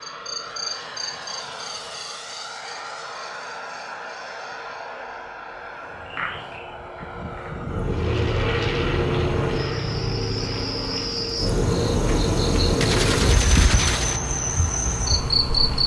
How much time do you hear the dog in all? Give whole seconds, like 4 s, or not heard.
not heard.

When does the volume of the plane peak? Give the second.
9 s.